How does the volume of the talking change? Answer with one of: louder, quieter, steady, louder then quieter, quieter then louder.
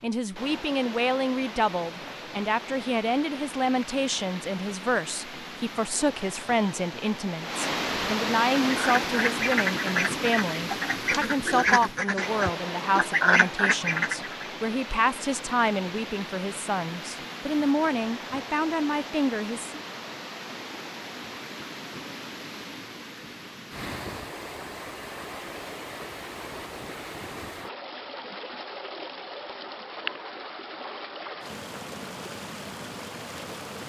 steady.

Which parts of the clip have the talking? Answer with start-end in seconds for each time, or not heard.
0.0-19.8.